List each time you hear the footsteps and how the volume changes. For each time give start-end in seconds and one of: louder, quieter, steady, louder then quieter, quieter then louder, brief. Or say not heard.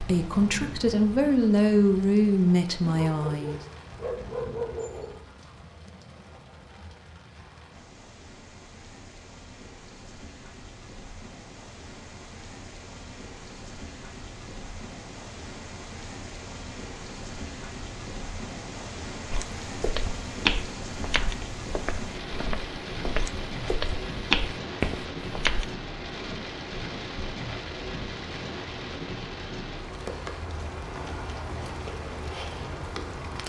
19.3-25.7 quieter then louder.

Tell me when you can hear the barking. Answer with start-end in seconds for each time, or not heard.
2.8-5.1.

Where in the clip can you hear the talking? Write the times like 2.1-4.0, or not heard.
0.0-3.6.